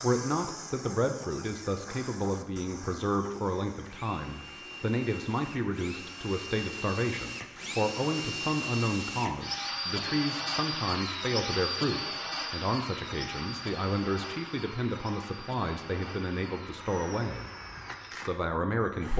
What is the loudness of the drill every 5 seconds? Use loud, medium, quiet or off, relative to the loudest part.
medium, loud, loud, medium.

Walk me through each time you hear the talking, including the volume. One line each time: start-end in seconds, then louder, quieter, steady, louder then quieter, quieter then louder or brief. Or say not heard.
0.0-17.5 steady
18.1-19.1 brief.